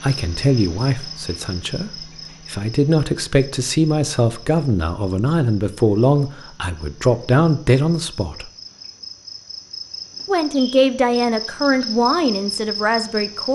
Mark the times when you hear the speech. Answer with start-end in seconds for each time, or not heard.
0.0-8.5, 10.2-13.5.